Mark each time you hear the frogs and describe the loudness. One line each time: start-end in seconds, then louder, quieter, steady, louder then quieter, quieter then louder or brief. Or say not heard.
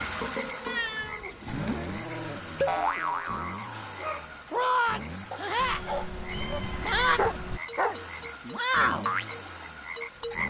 0.0-10.4 louder.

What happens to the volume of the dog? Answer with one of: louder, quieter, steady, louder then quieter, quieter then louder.
louder.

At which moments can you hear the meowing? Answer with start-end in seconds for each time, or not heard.
0.5-1.9, 5.5-7.6.